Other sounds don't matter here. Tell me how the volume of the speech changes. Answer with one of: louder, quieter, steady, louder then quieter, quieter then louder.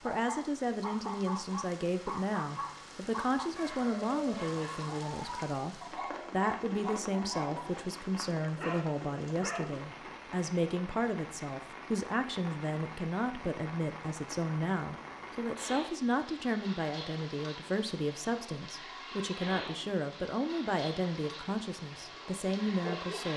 steady.